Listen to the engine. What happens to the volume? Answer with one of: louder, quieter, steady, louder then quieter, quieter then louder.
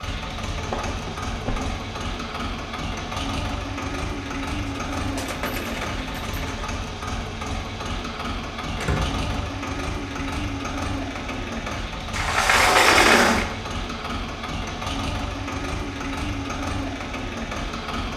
steady.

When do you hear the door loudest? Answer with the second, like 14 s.
13 s.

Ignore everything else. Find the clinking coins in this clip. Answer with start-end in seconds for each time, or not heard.
4.7-6.7.